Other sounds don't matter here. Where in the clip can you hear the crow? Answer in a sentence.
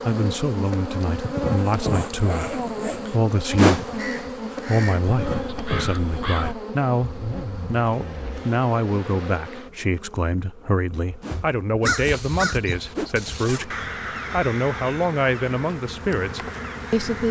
The crow can be heard from 4.0 to 6.5 s and from 11.8 to 17.2 s.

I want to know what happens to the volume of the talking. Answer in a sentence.
The loudness of the talking stays about the same.